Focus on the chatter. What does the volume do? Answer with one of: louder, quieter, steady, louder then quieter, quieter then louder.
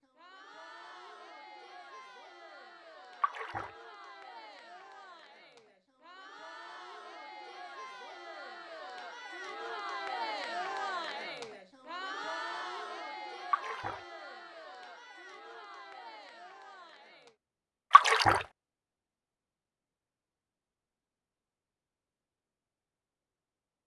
louder then quieter.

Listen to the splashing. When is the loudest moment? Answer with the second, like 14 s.
18 s.